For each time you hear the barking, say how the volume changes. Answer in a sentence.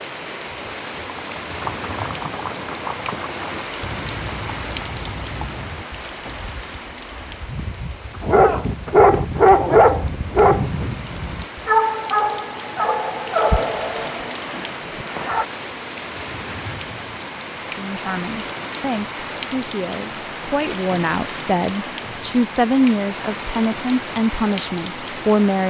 The barking can be heard from 8.2 to 15.4 s, getting quieter.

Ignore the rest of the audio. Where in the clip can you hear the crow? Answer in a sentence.
You can't hear the crow here.